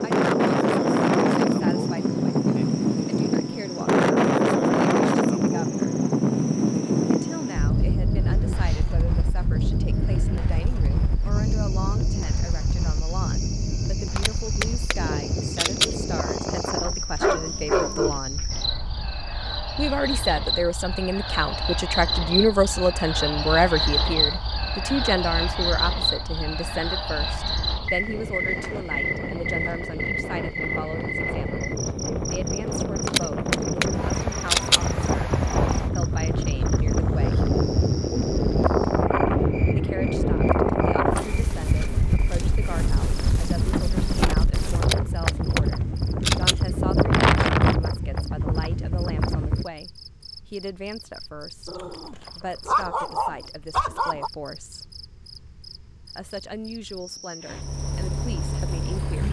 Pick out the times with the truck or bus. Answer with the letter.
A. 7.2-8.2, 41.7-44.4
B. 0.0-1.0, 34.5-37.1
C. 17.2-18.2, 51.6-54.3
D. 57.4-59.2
D.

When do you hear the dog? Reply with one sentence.
The dog can be heard from 17.2 to 18.2 s and from 51.6 to 54.3 s.